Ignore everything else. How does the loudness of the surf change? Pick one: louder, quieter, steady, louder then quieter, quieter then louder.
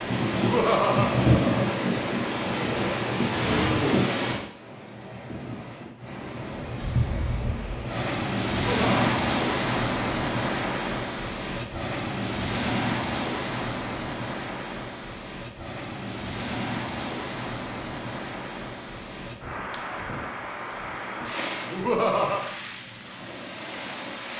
quieter.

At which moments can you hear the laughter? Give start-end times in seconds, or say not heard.
0.3-1.8, 8.6-9.2, 21.7-22.4.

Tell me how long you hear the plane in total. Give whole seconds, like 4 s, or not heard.
not heard.